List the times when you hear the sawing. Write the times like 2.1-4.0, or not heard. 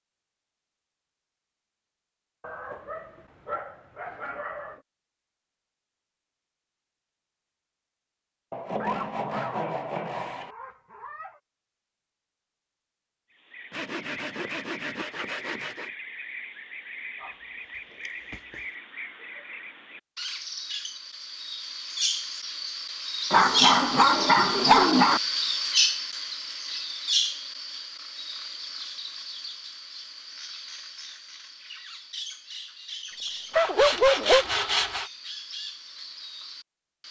8.5-10.6, 13.7-15.9, 33.5-35.1.